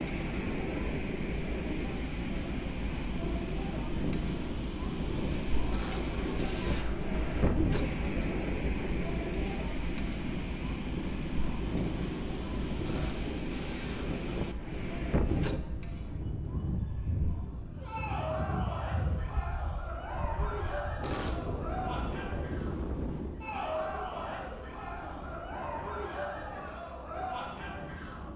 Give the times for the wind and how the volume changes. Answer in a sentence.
You can hear the wind from 0.0 to 28.3 s, getting quieter.